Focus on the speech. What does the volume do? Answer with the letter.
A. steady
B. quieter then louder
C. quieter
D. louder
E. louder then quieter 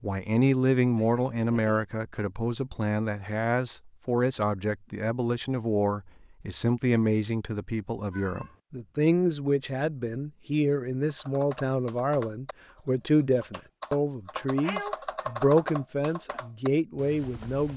A.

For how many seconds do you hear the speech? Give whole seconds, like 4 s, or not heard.
18 s.